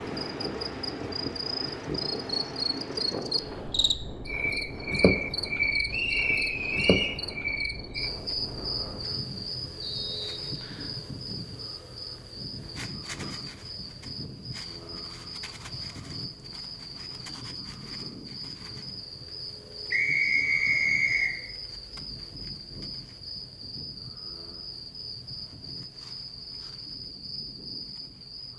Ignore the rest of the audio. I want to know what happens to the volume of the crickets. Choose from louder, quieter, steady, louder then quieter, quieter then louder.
quieter.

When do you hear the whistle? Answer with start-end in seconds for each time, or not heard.
5.9-7.2, 9.8-10.9, 19.9-21.3.